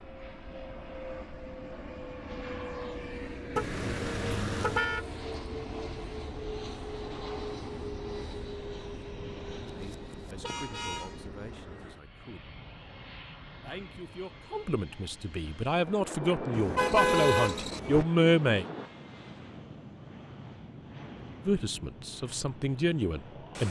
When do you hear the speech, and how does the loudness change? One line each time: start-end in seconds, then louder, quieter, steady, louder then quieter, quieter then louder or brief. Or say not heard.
9.7-12.4 brief
13.6-18.6 louder
21.4-23.6 brief.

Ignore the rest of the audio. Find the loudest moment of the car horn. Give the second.
17 s.